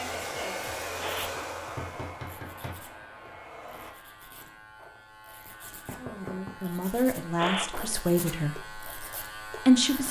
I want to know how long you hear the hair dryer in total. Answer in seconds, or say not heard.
4 s.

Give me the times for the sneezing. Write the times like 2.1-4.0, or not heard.
1.0-1.6, 7.3-8.1.